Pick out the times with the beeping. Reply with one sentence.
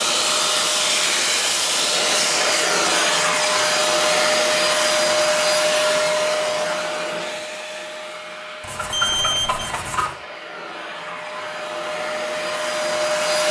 You can hear the beeping from 8.9 to 9.7 s.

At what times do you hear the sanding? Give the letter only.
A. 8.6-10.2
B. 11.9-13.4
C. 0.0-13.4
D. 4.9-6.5
A.